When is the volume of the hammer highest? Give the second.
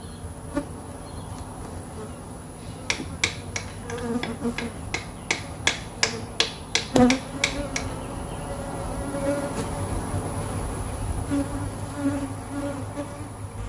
6 s.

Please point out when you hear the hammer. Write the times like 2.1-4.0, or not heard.
2.9-7.8.